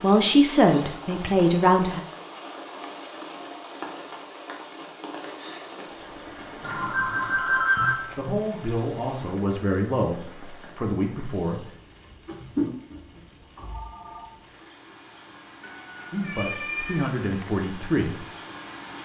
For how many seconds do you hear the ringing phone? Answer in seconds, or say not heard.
3 s.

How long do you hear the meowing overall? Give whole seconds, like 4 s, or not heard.
2 s.